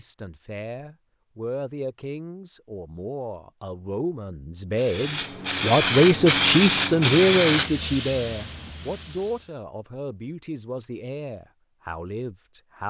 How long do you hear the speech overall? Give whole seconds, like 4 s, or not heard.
13 s.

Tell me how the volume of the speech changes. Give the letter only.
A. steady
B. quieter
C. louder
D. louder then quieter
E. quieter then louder
D.